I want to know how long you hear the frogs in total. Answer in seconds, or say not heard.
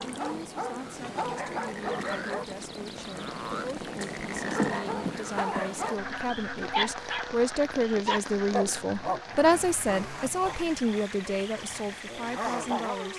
13 s.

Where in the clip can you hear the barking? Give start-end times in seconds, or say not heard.
0.0-2.5, 4.5-13.1.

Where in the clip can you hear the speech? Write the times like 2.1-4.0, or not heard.
0.1-13.1.